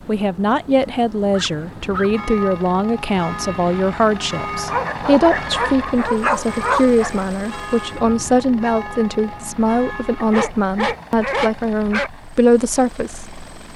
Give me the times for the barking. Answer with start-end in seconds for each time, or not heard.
1.3-2.1, 4.7-7.2, 10.2-12.1.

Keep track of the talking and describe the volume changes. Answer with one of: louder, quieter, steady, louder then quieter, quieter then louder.
steady.